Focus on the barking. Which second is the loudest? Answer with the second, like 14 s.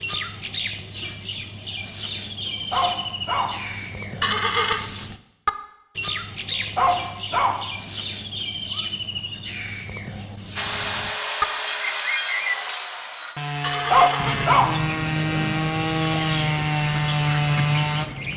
14 s.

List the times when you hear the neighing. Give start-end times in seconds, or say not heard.
4.2-4.9, 13.6-14.6.